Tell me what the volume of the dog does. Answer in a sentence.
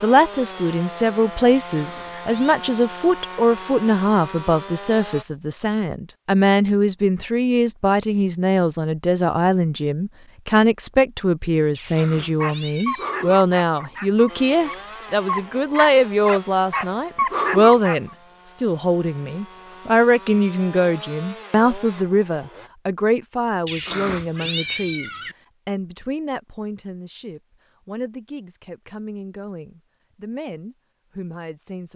The volume of the dog goes down, then up.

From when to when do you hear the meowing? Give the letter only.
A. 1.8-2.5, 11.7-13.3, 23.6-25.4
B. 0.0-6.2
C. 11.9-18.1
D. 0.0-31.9
A.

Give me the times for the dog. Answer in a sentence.
The dog can be heard from 11.9 to 18.1 s.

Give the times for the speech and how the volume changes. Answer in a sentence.
You can hear the speech from 0.0 to 31.9 s, getting quieter.